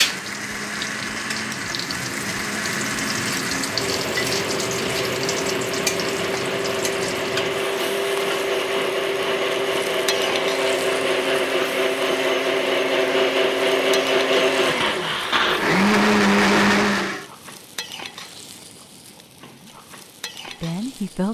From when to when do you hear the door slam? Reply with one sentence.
You can't hear the door slam here.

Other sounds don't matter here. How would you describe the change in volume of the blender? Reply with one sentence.
The loudness of the blender goes up.